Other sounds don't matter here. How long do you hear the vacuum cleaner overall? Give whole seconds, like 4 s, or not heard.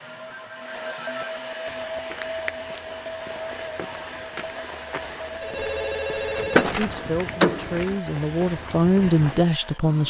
10 s.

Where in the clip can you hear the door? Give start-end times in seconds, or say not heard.
6.3-7.8.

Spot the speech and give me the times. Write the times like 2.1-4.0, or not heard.
6.8-10.0.